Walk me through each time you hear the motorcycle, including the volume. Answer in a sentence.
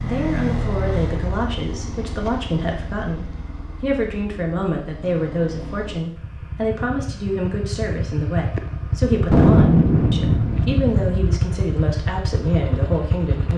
You can hear the motorcycle from 0.0 to 13.5 s, getting quieter then louder.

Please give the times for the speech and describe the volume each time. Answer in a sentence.
The speech can be heard from 0.0 to 13.5 s, at a steady volume.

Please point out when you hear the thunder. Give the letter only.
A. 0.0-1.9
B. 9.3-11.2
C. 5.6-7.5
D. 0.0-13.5
B.